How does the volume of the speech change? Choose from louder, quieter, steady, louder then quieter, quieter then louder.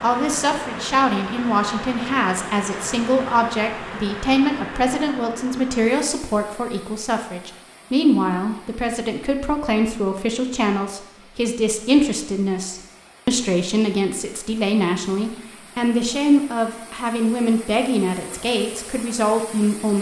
steady.